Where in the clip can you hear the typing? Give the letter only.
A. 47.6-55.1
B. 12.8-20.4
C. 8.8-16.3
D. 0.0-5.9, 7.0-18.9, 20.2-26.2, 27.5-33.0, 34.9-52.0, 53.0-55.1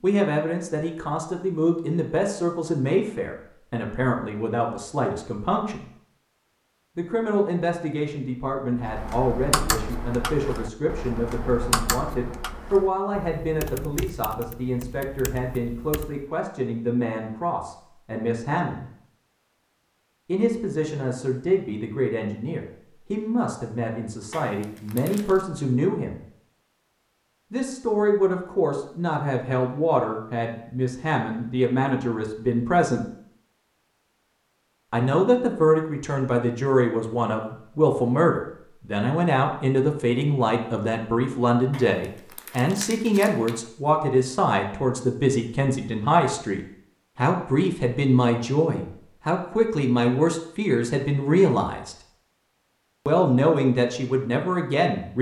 C.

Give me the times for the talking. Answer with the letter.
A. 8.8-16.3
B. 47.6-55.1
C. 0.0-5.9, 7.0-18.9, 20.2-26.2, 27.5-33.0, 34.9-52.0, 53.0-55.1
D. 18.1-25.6
C.